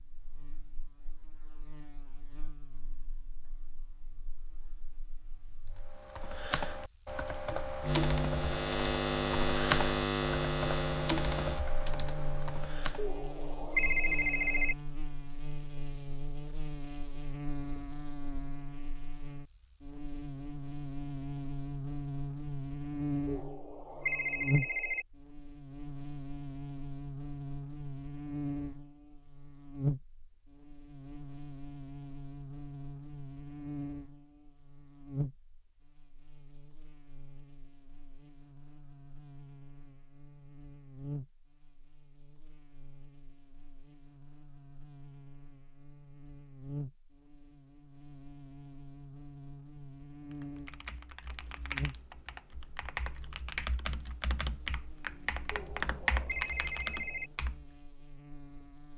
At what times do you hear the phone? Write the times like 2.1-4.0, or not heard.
12.9-14.8, 23.2-25.1, 55.5-57.3.